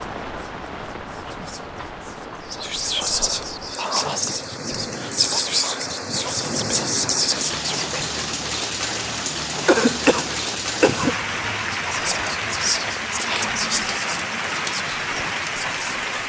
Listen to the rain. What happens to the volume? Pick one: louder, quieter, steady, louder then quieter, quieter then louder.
louder.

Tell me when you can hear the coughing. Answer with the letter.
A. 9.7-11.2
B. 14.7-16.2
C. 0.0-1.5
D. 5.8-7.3
A.